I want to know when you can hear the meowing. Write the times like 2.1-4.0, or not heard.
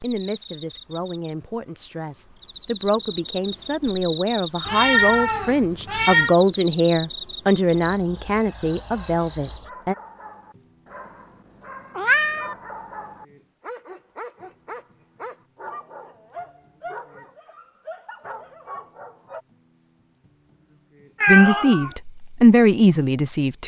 4.7-6.3, 11.9-12.6, 21.2-21.9.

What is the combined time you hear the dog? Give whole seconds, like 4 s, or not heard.
11 s.